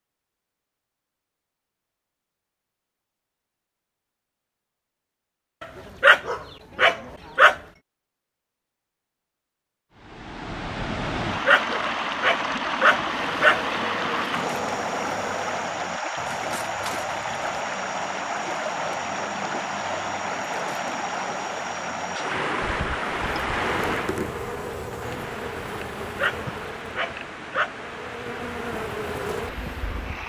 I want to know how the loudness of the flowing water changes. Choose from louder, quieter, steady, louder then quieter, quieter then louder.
quieter.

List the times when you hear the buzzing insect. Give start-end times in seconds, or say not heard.
13.1-15.8, 23.2-30.2.